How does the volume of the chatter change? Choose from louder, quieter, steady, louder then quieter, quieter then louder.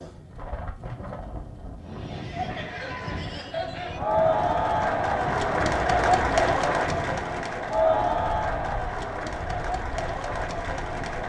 louder then quieter.